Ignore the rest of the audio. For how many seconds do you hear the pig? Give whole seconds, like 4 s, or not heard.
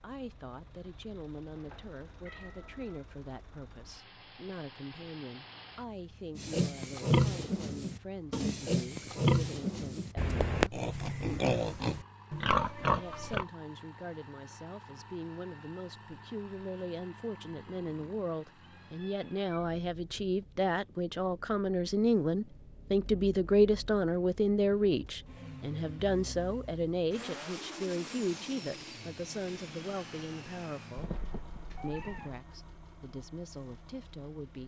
7 s.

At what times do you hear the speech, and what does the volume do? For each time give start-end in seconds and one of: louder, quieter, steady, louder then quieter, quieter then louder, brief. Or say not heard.
0.0-10.6 steady
12.8-31.1 louder then quieter
31.8-34.6 brief.